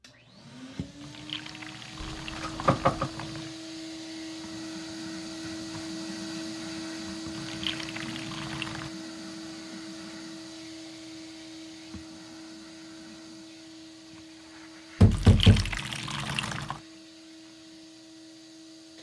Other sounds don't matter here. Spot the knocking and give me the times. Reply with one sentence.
You can hear the knocking from 2.0 to 3.1 s and from 15.0 to 15.8 s.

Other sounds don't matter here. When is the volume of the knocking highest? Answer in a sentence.
The volume of the knocking peaks at 15 seconds.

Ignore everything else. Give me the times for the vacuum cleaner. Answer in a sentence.
The vacuum cleaner can be heard from 0.0 to 18.9 s.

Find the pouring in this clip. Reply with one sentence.
You can hear the pouring from 1.0 to 3.6 s, from 7.3 to 8.9 s and from 15.1 to 16.8 s.